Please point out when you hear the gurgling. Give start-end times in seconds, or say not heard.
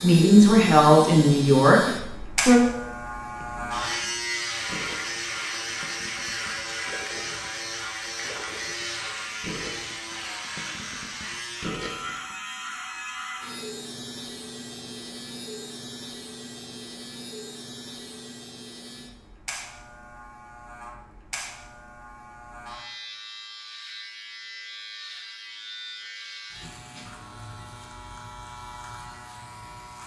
3.2-12.3.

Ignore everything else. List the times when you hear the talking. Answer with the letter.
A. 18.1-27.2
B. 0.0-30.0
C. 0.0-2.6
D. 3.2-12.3
C.